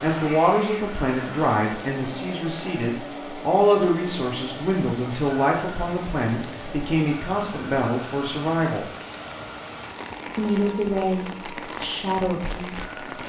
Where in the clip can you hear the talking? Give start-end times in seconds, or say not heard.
0.0-8.8, 10.2-12.8.